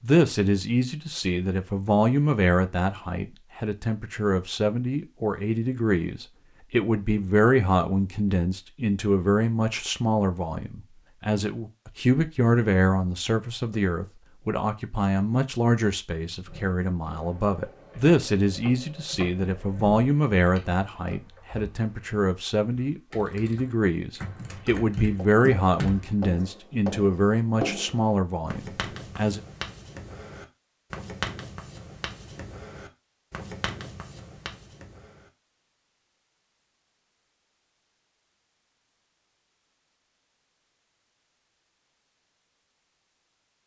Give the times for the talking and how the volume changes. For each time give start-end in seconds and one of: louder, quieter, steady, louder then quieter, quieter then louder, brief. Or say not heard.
0.0-29.4 steady.